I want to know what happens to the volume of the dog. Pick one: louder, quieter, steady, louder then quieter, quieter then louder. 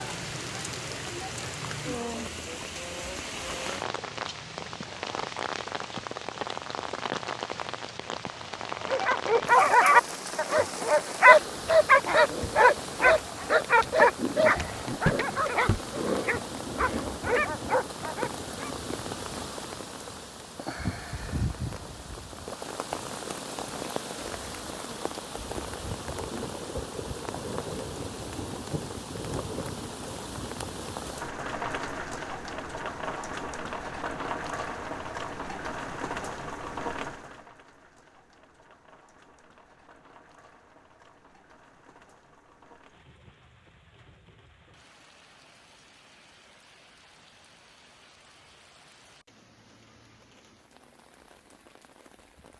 quieter.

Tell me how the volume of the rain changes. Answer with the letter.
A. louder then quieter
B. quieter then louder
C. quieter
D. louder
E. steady
C.